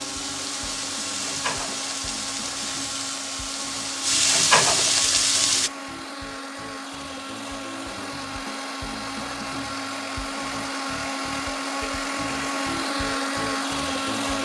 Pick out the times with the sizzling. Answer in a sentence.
You can hear the sizzling from 0.0 to 5.7 s.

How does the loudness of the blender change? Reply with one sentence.
The volume of the blender goes up.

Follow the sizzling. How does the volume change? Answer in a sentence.
The loudness of the sizzling goes up.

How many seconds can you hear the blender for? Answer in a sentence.
You can hear the blender for 14 seconds altogether.